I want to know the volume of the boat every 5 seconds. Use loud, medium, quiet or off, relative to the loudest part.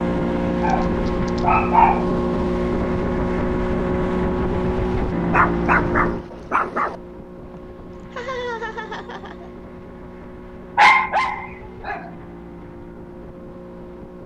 loud, medium, quiet.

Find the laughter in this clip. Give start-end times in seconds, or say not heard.
7.5-9.5.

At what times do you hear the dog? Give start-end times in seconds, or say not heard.
0.6-2.0, 5.3-7.0, 10.8-12.1.